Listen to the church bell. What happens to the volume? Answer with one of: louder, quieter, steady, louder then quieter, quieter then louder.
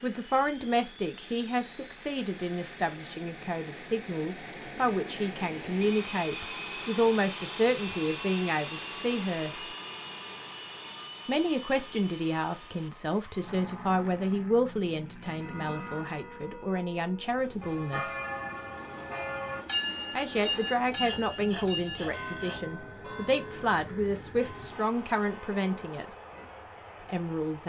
louder then quieter.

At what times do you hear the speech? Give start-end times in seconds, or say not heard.
0.0-9.5, 11.2-18.1, 20.1-26.1, 27.1-27.6.